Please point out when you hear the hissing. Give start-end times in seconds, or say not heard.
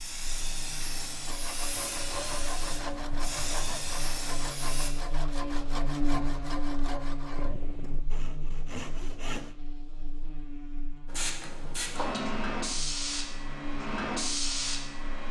0.0-4.9, 11.1-15.2.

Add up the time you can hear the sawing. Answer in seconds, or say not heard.
8 s.